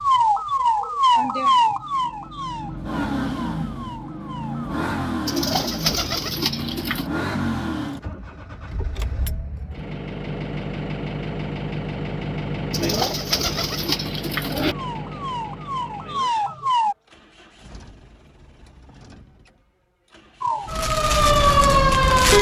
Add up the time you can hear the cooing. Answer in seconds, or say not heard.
4 s.